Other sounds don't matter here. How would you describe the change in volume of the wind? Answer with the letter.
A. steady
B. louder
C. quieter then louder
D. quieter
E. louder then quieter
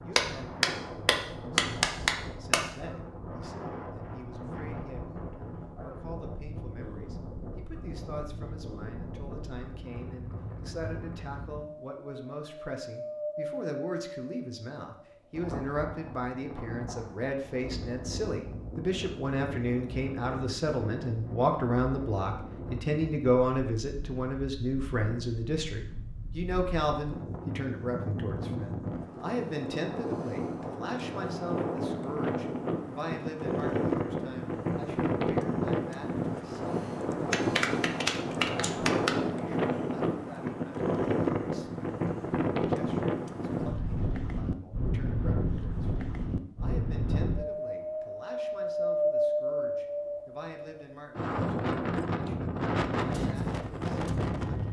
B.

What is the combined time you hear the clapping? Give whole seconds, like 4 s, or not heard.
4 s.